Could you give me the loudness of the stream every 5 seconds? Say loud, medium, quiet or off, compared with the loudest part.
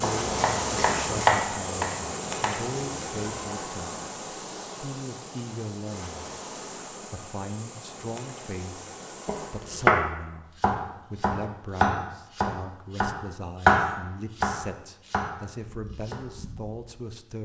loud, medium, off, off.